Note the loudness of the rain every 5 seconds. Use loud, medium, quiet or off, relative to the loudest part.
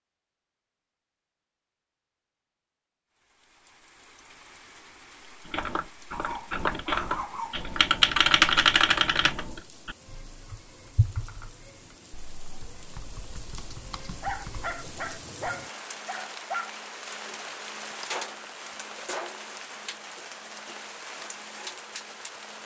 quiet, quiet, medium, loud, loud.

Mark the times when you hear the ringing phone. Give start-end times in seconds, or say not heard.
not heard.